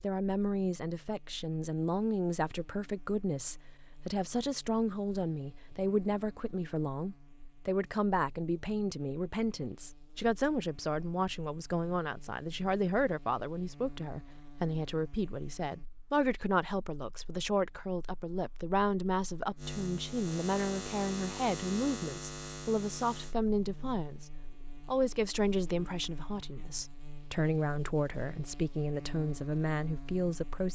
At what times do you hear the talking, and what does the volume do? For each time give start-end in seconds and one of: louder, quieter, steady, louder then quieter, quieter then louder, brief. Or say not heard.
0.0-24.2 steady
24.9-30.7 quieter then louder.